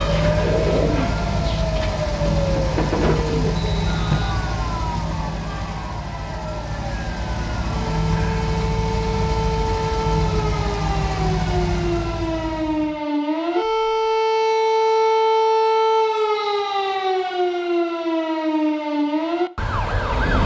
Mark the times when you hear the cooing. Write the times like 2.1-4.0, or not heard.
0.0-4.2.